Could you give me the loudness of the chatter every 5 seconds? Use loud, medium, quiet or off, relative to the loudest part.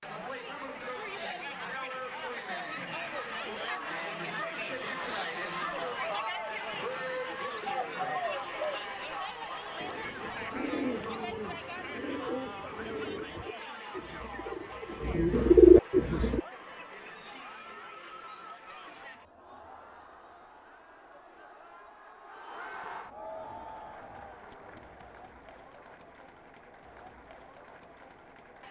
loud, loud, medium, medium, medium, quiet.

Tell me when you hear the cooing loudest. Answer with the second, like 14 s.
16 s.